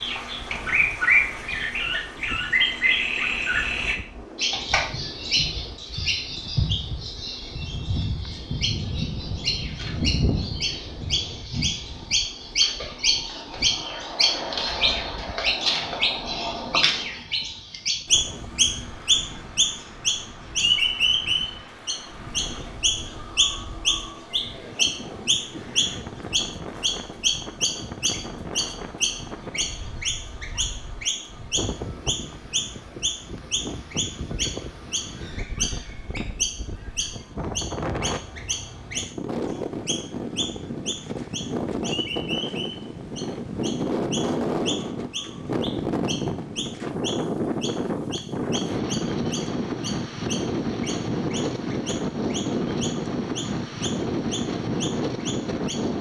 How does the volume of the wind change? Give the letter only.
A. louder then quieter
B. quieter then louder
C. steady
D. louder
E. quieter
D.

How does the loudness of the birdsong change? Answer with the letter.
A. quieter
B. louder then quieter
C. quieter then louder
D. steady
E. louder
A.